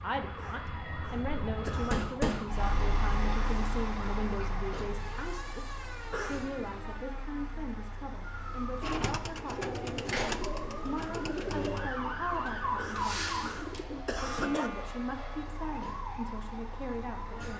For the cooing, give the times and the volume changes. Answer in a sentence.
You can hear the cooing from 8.8 to 14.1 s, getting quieter.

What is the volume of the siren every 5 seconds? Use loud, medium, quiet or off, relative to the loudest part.
medium, medium, loud, medium.